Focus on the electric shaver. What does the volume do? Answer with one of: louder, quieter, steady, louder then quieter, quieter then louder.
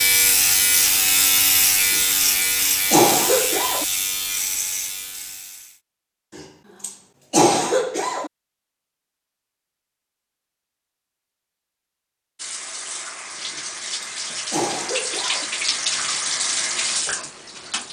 quieter.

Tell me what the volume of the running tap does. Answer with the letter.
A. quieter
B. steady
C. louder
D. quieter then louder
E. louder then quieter
C.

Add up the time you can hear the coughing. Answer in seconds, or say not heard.
6 s.